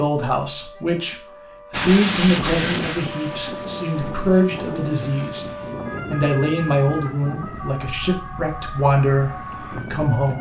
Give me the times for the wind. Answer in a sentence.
You can hear the wind from 1.7 to 10.3 s.